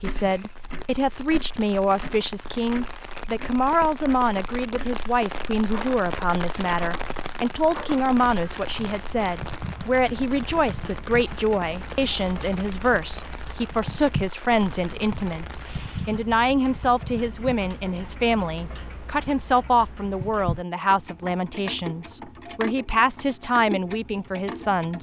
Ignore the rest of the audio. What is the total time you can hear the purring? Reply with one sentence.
You can't hear the purring here.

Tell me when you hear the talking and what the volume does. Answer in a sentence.
The talking can be heard from 0.0 to 24.9 s, at a steady volume.